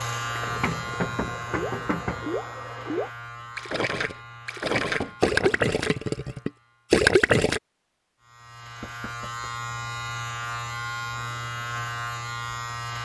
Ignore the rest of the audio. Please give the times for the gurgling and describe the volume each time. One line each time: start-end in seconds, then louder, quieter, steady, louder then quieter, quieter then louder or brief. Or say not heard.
0.3-7.6 louder.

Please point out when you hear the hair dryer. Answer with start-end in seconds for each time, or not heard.
0.0-3.1.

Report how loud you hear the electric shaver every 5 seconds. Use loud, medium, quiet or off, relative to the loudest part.
loud, medium, loud.